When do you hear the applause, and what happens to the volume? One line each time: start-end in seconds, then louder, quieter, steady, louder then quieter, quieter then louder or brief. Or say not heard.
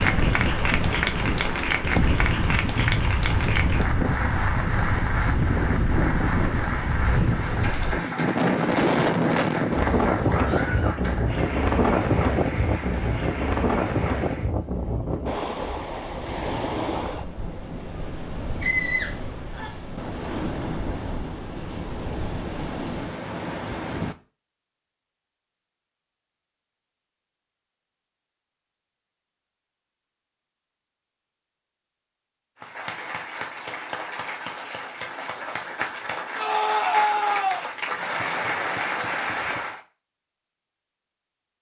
0.0-14.5 quieter
32.5-39.8 louder.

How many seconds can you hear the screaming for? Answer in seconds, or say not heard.
3 s.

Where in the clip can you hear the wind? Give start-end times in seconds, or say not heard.
0.0-24.1.